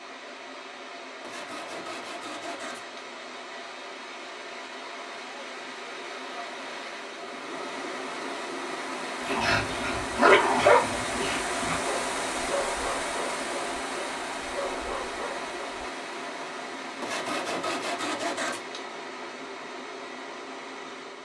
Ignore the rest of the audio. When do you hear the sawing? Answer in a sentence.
You can hear the sawing from 1.2 to 3.0 s and from 17.0 to 18.8 s.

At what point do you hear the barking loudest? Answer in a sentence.
The loudest moment of the barking is at 10 seconds.